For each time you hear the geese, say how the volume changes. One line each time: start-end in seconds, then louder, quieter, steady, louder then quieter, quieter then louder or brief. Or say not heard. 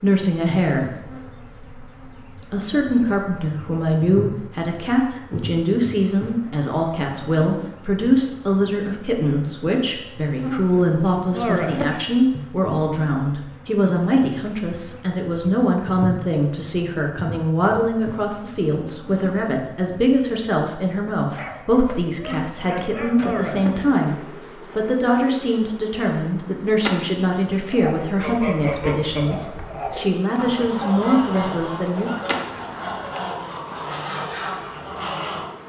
27.7-35.5 steady.